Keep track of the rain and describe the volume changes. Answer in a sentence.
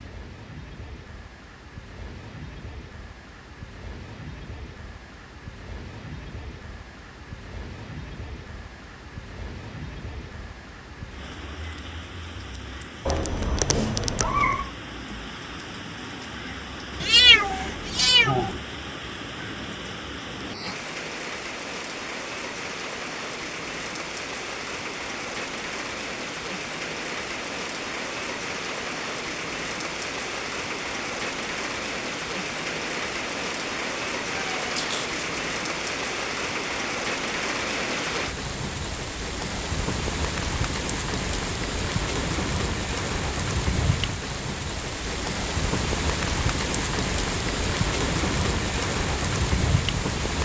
The volume of the rain goes up.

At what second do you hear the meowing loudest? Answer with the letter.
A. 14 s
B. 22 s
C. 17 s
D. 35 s
C.